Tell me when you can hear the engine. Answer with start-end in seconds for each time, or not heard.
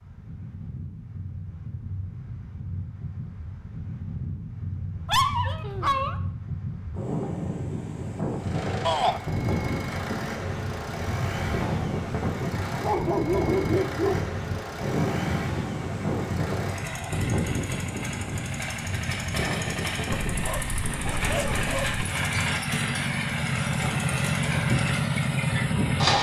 8.3-26.1.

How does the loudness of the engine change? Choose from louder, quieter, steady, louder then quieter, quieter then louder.
louder.